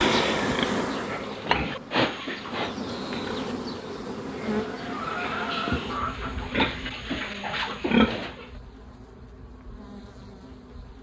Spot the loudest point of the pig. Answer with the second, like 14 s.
8 s.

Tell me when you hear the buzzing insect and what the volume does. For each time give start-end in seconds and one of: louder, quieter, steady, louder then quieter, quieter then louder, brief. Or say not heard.
0.0-10.9 quieter.